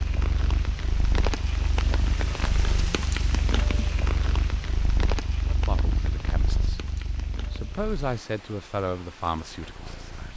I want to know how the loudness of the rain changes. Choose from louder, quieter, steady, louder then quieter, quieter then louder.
quieter.